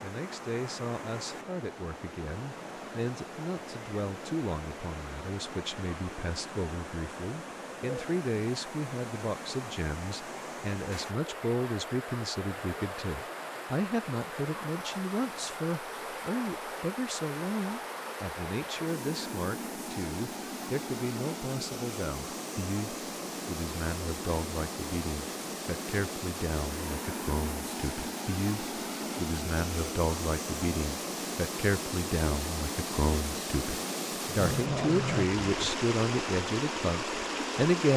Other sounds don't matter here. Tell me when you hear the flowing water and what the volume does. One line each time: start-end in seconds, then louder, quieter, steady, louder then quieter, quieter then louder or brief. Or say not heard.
0.0-37.9 louder.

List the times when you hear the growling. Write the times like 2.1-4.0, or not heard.
34.4-35.7.